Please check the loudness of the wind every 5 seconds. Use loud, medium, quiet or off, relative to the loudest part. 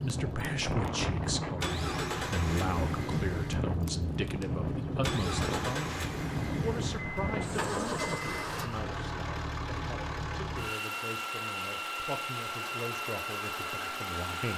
loud, loud, off.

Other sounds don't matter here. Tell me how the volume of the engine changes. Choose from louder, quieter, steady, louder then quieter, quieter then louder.
steady.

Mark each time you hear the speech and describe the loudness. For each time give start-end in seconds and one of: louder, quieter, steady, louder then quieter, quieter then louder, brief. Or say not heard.
0.0-14.5 quieter.